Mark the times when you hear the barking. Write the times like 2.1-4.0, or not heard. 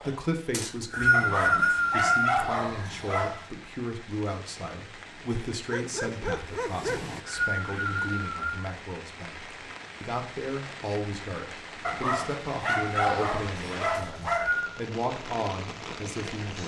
1.1-3.5, 5.7-7.2, 11.8-14.6.